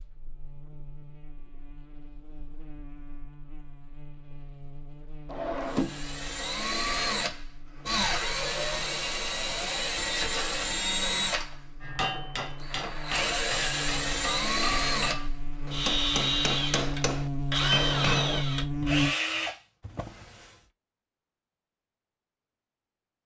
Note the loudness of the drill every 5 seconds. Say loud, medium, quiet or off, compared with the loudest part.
off, loud, loud, loud, off.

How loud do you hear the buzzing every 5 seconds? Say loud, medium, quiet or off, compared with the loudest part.
quiet, quiet, quiet, loud, off.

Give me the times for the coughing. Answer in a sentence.
You can't hear the coughing here.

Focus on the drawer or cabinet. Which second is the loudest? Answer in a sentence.
The loudest moment of the drawer or cabinet is at 6 seconds.